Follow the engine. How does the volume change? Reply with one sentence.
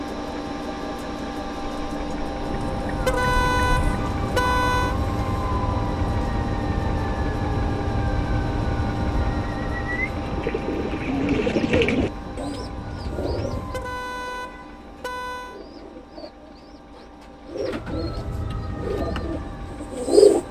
The volume of the engine goes down.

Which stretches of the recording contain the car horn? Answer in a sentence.
You can hear the car horn from 3.0 to 5.0 s and from 13.7 to 15.6 s.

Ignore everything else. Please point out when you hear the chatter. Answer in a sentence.
You can't hear the chatter here.